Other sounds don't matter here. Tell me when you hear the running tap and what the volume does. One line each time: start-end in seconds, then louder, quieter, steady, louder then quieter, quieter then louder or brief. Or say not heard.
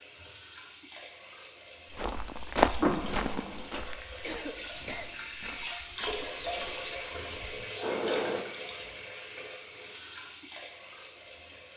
0.0-11.7 louder then quieter.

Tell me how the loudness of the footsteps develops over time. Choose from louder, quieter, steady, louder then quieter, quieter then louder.
quieter.